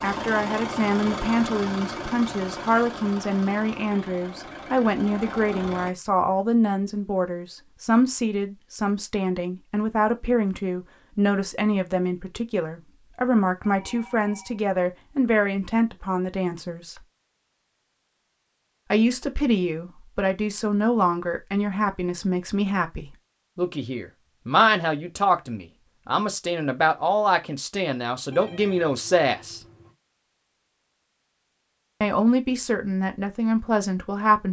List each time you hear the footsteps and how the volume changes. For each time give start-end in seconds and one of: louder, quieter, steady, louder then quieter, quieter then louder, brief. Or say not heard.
not heard.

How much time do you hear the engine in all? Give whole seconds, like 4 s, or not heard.
6 s.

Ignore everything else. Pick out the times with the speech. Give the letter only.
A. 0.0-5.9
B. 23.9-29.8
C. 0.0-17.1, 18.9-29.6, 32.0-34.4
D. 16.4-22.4
C.